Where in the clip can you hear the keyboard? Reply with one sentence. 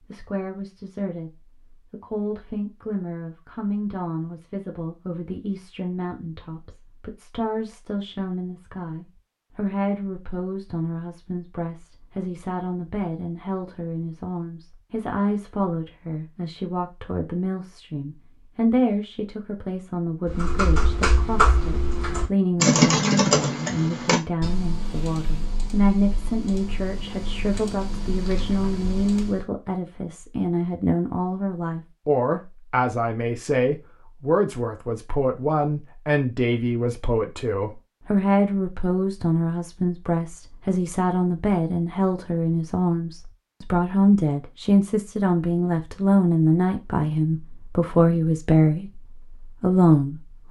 You can hear the keyboard from 20.2 to 29.4 s.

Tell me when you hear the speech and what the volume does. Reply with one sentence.
The speech can be heard from 0.1 to 50.4 s, getting louder.